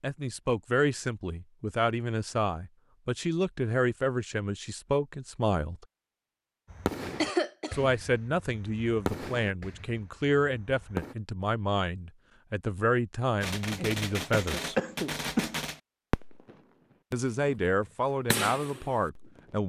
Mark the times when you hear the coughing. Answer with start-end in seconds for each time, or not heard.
7.2-7.9, 13.8-15.6.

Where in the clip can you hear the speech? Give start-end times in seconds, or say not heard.
0.0-5.8, 7.7-14.8, 17.1-19.6.